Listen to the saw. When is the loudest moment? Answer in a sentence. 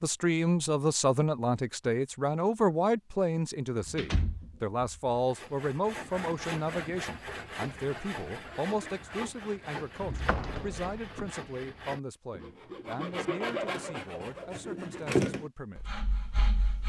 The loudest moment of the saw is at 15 seconds.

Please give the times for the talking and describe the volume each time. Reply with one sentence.
The talking can be heard from 0.0 to 15.9 s, getting quieter.